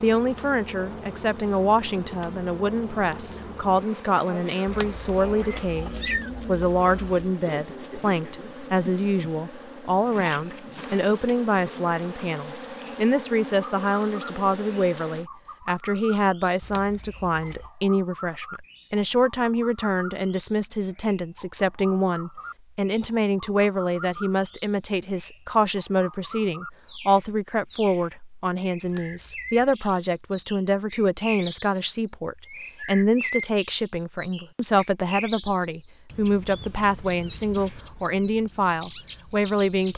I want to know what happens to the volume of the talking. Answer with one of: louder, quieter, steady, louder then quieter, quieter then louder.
steady.